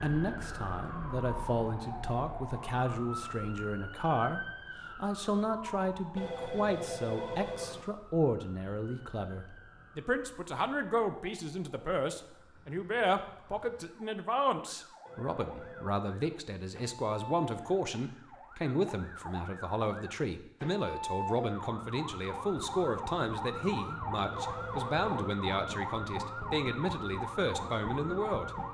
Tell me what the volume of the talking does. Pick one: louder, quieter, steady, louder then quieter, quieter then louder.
steady.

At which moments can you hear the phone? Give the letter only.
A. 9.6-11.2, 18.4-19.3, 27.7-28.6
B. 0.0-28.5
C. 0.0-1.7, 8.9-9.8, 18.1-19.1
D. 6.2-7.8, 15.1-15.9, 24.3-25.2
D.